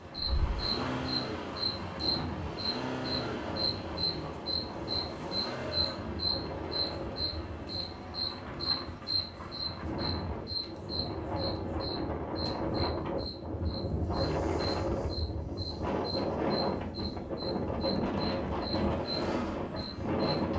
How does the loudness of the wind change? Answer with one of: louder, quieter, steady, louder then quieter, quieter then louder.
louder.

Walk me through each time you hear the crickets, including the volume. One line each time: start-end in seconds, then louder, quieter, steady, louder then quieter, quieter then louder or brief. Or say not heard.
0.0-20.5 quieter.